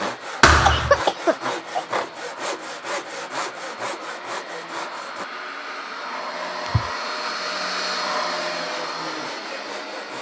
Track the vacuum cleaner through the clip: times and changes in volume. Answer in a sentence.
You can hear the vacuum cleaner from 0.0 to 10.1 s, getting louder.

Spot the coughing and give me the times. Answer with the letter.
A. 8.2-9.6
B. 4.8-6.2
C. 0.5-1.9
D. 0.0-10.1
C.